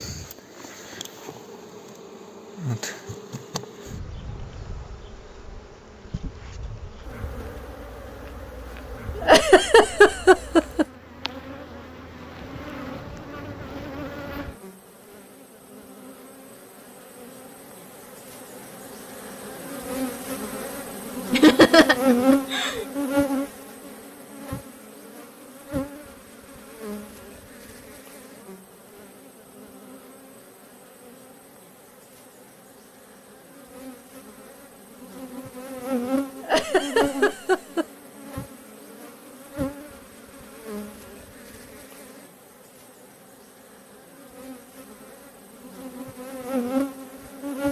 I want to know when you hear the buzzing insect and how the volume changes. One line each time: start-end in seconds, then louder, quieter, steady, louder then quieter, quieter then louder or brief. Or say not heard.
0.0-47.6 louder then quieter.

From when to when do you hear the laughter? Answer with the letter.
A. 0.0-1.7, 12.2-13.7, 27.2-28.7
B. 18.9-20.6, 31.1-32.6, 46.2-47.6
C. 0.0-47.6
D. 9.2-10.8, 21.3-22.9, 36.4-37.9
D.